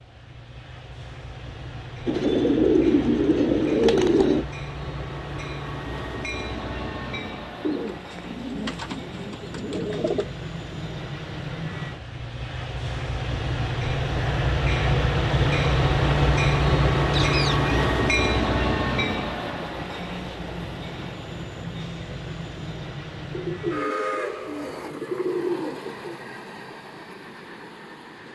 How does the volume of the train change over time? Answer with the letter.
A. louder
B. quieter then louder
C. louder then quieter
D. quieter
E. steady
C.